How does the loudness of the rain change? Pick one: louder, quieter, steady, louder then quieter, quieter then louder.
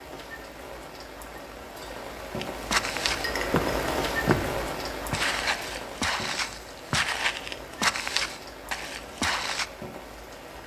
louder then quieter.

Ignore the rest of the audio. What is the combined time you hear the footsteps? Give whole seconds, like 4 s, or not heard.
7 s.